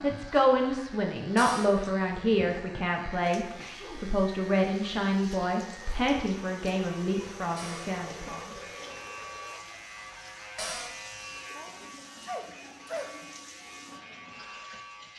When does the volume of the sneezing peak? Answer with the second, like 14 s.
13 s.